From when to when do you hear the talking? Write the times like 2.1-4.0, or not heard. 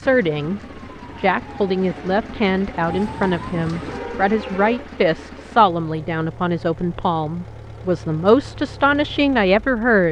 0.0-0.6, 1.2-10.0.